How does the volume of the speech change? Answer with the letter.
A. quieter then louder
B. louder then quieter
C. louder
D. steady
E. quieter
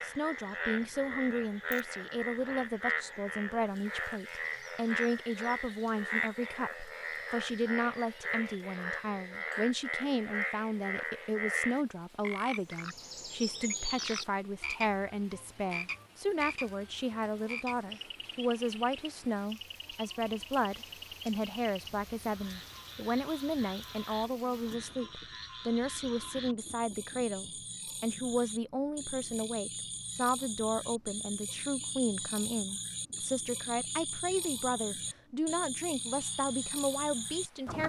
D.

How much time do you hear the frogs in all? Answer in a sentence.
You can hear the frogs for 38 seconds altogether.